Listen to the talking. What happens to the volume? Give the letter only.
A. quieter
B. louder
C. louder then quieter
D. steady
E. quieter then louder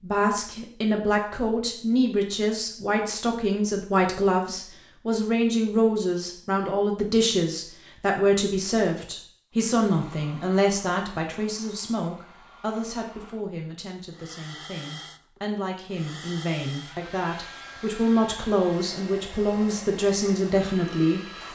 E.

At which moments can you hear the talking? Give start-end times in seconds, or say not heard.
0.0-21.4.